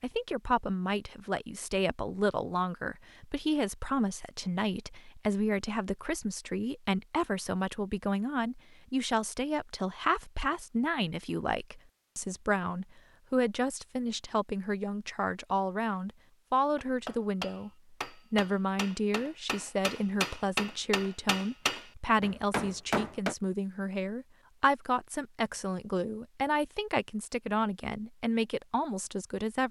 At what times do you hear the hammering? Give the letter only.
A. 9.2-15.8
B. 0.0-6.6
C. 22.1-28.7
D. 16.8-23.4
D.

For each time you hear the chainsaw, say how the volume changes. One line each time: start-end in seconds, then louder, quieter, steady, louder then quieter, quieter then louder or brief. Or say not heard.
not heard.